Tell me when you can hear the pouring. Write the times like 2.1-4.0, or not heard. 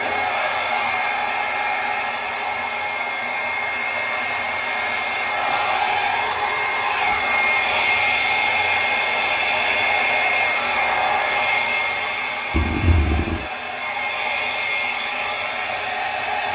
12.5-13.4.